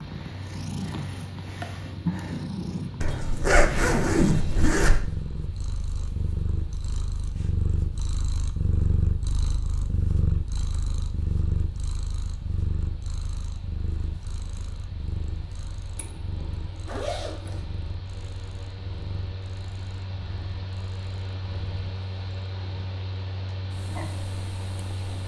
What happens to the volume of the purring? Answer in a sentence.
The volume of the purring goes down.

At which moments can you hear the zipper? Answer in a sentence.
The zipper can be heard from 3.0 to 5.0 s and from 15.9 to 17.6 s.